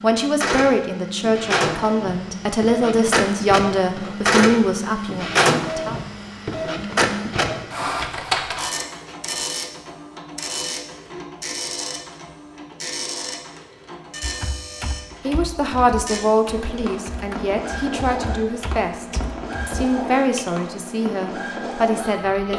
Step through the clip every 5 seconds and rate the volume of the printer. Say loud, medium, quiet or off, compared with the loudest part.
loud, loud, medium, medium, medium.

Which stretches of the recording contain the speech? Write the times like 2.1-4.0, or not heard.
0.0-6.0, 15.2-22.5.